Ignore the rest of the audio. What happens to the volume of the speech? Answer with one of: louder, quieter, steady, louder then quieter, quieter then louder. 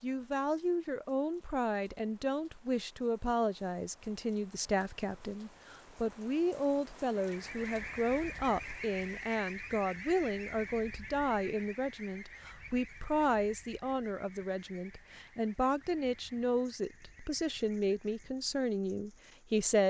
steady.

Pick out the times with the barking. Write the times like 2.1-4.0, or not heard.
not heard.